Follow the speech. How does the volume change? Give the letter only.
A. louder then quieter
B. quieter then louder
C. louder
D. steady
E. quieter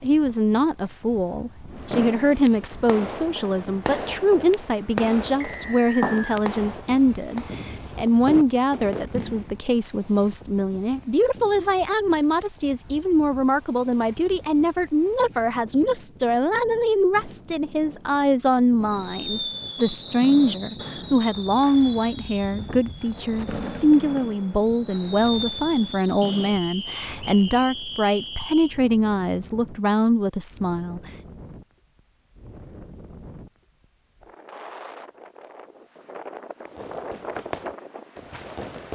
D.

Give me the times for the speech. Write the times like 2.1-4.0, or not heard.
0.0-31.0.